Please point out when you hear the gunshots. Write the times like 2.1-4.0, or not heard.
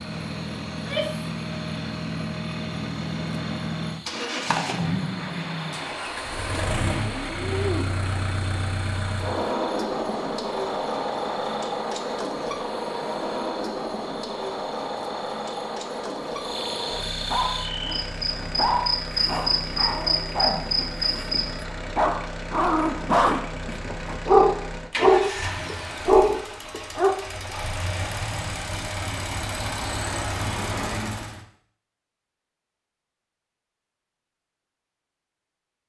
4.1-7.8.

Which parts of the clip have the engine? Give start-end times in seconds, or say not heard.
0.0-31.4.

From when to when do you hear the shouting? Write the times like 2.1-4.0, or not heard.
0.7-1.3.